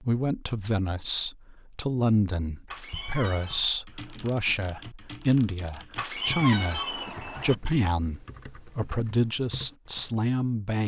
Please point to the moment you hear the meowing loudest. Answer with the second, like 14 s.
6 s.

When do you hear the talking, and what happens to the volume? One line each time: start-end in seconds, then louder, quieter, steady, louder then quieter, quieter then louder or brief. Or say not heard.
0.0-10.8 steady.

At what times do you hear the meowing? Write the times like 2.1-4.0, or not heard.
2.6-3.7, 6.0-7.5.